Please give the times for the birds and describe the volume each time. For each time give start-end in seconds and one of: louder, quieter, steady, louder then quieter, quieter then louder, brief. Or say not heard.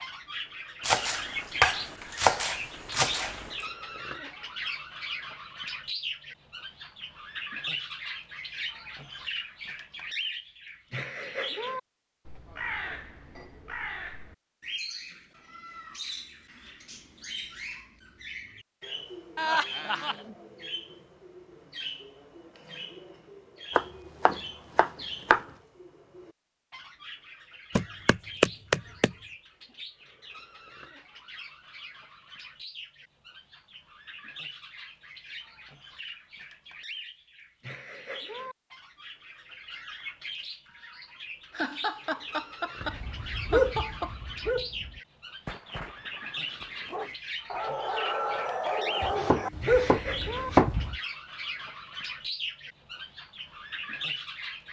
0.0-54.6 quieter then louder.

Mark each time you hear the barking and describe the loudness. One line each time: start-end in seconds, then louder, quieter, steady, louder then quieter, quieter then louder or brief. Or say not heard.
42.8-51.0 quieter then louder.